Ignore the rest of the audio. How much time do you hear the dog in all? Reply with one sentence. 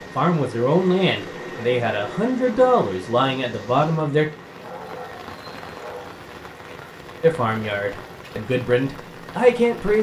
The dog can be heard for 2 seconds in total.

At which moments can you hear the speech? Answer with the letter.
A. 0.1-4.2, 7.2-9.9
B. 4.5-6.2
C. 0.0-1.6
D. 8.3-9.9
A.